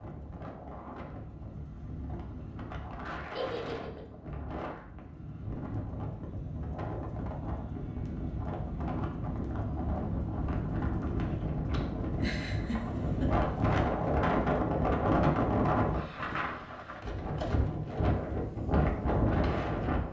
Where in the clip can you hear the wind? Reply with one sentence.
The wind can be heard from 0.0 to 20.0 s.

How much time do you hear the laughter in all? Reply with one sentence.
You can hear the laughter for 2 seconds altogether.